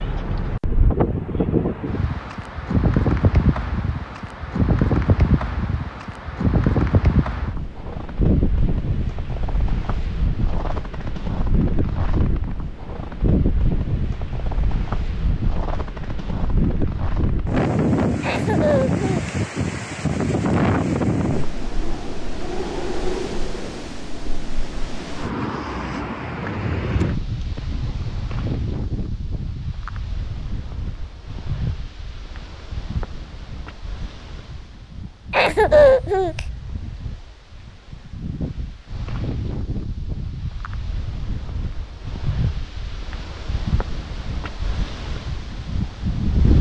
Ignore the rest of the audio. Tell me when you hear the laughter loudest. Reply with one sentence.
The loudest moment of the laughter is at 36 seconds.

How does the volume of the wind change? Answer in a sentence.
The volume of the wind goes down.